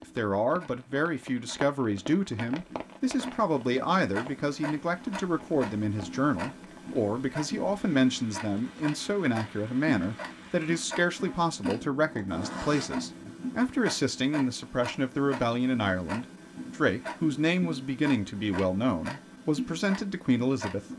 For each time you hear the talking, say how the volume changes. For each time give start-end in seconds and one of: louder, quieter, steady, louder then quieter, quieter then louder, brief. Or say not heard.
0.0-20.9 steady.